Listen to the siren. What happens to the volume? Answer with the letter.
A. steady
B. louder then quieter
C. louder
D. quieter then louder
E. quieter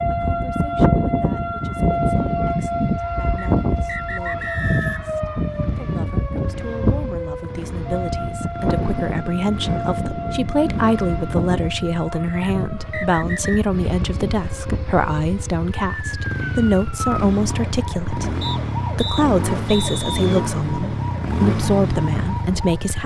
E.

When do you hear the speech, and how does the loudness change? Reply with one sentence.
You can hear the speech from 0.1 to 23.0 s, getting louder.